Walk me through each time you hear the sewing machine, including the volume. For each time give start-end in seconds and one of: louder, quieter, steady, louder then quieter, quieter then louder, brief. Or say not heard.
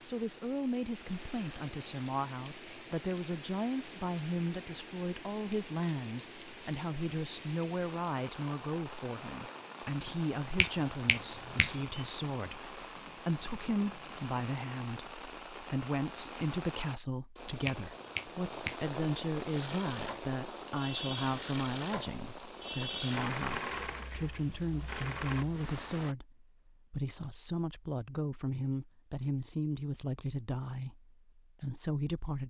19.4-25.4 louder then quieter.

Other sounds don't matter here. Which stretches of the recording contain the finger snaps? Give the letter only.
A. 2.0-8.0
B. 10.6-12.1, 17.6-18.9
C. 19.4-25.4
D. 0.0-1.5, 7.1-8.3
B.